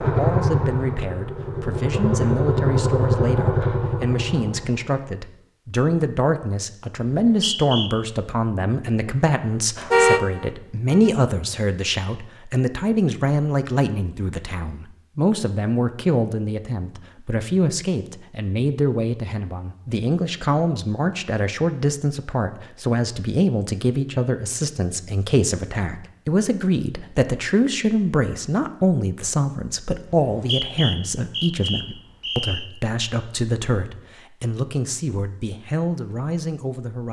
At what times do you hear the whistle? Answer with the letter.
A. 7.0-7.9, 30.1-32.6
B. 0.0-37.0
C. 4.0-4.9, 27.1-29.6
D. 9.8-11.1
A.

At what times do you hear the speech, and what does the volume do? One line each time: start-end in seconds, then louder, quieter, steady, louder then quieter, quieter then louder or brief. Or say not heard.
0.0-37.0 steady.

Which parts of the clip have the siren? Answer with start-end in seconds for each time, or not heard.
not heard.